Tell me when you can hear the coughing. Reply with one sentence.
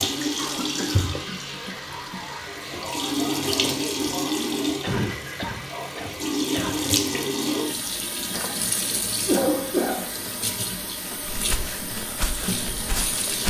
You can hear the coughing from 0.3 to 2.2 s, from 4.8 to 6.8 s and from 9.2 to 10.2 s.